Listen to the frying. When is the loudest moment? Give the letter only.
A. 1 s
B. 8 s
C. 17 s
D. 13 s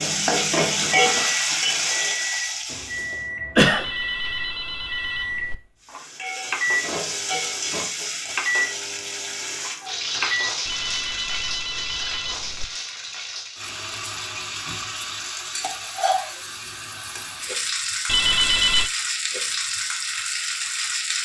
A.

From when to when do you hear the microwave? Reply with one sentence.
The microwave can be heard from 0.0 to 10.6 s.